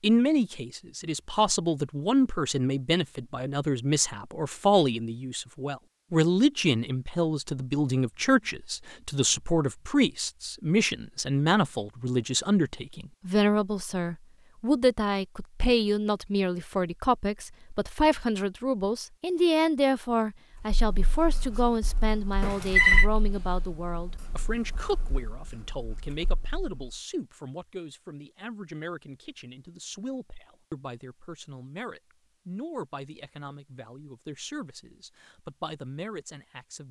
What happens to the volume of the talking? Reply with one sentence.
The volume of the talking goes down.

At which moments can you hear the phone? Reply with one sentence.
The phone can be heard from 22.4 to 23.1 s.